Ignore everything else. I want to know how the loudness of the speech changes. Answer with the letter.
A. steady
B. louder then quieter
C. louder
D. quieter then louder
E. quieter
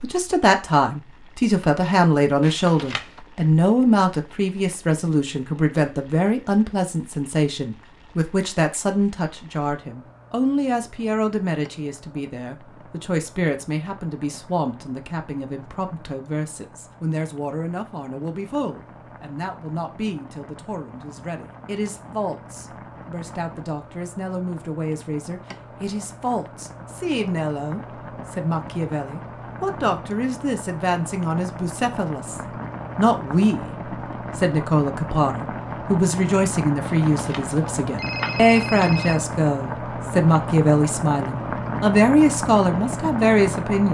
D.